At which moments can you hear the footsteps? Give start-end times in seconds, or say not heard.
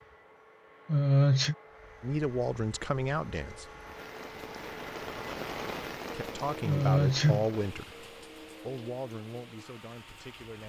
not heard.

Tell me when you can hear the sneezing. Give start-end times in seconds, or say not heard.
0.8-1.6, 6.7-7.5.